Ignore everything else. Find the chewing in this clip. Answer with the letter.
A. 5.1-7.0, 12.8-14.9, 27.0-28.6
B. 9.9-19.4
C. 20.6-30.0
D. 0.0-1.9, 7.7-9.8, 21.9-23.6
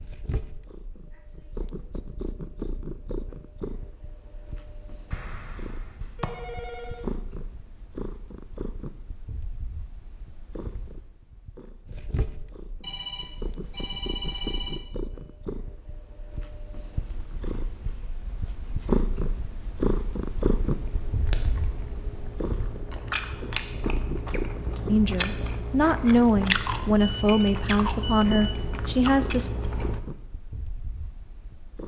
C.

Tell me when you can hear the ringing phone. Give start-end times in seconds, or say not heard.
5.1-7.0, 12.8-14.9, 27.0-28.6.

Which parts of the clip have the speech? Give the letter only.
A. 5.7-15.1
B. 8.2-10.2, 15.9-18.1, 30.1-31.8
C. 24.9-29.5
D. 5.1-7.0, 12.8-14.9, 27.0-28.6
C.